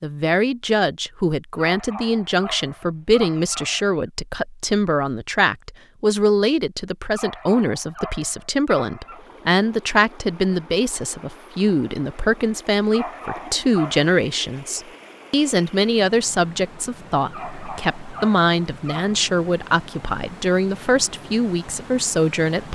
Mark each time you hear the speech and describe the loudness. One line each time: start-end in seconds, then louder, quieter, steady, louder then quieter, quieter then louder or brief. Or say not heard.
0.0-22.6 steady.